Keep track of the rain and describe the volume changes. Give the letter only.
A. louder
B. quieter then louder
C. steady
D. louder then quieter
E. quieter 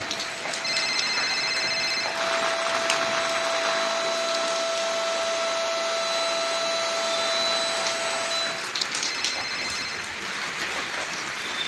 B.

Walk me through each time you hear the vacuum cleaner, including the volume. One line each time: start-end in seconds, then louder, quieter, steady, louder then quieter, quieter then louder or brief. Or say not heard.
0.0-8.7 louder.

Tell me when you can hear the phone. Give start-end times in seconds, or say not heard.
0.6-2.1, 9.1-10.1.